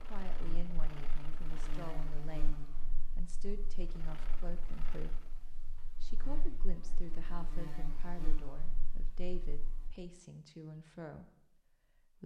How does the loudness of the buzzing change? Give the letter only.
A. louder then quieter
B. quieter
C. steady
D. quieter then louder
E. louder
D.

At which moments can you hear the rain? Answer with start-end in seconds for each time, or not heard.
not heard.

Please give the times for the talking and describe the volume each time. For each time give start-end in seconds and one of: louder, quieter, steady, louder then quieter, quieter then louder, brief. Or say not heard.
0.0-12.2 steady.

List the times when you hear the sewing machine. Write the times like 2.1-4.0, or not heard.
0.0-5.5.